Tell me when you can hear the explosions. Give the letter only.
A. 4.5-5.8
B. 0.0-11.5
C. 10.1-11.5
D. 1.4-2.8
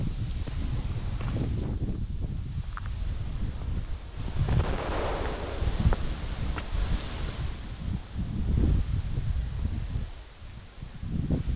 A.